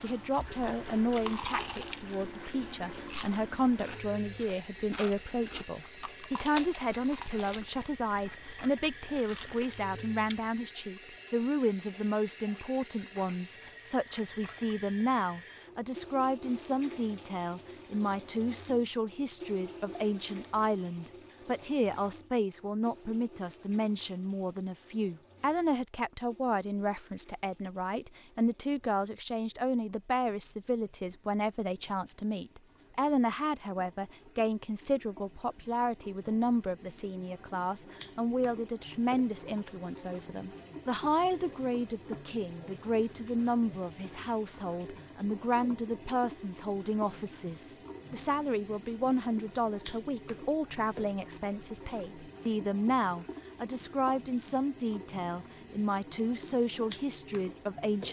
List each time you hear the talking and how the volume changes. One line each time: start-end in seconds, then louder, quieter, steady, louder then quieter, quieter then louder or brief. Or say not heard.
0.0-58.0 steady.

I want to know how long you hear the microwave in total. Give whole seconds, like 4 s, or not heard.
not heard.